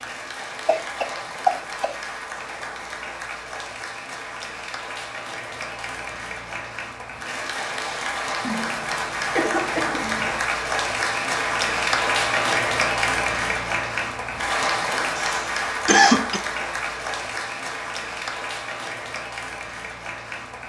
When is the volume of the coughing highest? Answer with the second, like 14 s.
16 s.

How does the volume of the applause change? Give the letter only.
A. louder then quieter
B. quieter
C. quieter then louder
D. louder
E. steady
A.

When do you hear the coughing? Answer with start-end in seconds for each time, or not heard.
0.7-2.0, 8.4-10.4, 15.2-16.4.